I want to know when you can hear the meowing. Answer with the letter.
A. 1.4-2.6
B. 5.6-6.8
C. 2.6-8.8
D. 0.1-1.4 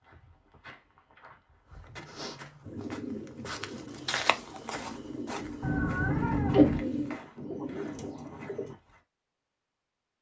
B.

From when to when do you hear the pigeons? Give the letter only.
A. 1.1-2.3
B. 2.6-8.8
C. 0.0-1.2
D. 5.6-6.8
B.